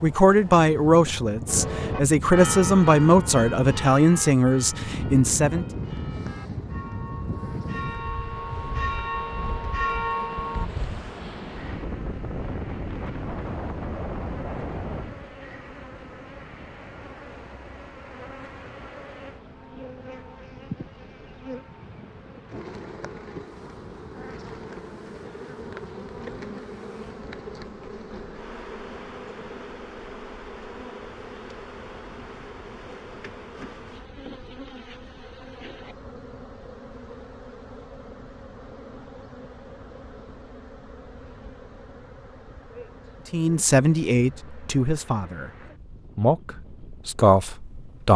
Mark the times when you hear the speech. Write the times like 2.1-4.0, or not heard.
0.0-5.7, 43.3-48.1.